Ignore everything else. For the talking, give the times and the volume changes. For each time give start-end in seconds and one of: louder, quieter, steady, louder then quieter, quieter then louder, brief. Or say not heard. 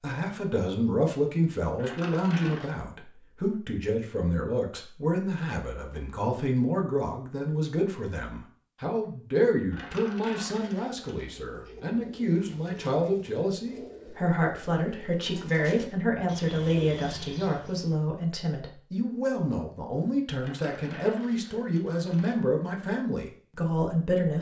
0.0-24.3 steady.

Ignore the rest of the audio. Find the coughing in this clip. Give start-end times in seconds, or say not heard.
not heard.